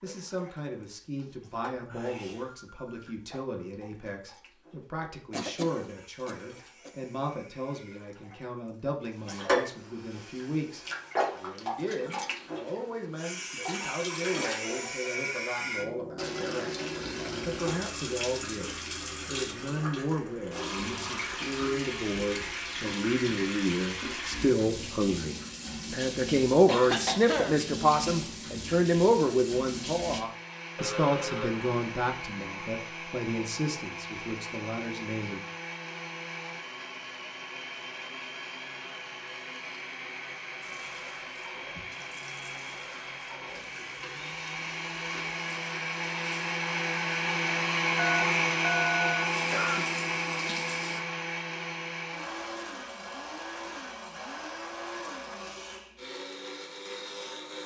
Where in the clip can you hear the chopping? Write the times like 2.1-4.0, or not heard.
not heard.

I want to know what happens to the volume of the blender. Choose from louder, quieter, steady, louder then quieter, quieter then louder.
louder then quieter.